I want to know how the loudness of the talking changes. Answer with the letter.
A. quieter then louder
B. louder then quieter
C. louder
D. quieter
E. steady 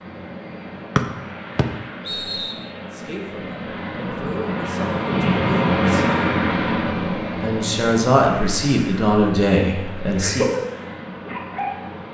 C.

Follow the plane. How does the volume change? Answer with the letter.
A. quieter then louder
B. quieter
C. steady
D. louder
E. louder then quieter
E.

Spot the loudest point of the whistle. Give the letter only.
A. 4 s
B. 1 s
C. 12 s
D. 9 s
B.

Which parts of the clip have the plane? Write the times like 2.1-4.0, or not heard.
0.0-12.0.